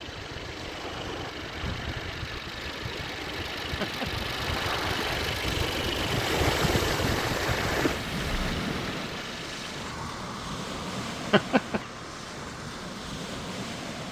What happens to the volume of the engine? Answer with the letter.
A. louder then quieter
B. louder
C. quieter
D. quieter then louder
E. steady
A.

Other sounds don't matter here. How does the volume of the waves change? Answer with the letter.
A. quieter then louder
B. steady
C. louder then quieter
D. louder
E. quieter
C.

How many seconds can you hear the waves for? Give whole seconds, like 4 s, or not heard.
14 s.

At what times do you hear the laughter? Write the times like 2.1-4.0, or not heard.
3.8-4.8, 11.3-11.8.